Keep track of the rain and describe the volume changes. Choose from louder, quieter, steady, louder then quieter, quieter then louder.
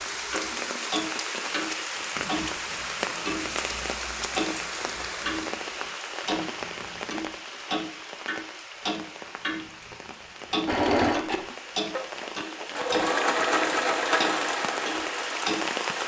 quieter then louder.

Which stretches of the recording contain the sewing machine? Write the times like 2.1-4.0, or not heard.
10.7-16.0.